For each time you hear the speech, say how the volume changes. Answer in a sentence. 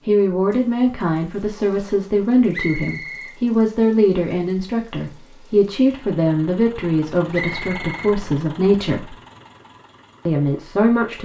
You can hear the speech from 0.1 to 9.2 s, at a steady volume; and briefly from 10.2 to 11.2 s.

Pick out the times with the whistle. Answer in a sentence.
You can hear the whistle from 2.5 to 3.4 s and from 7.3 to 8.2 s.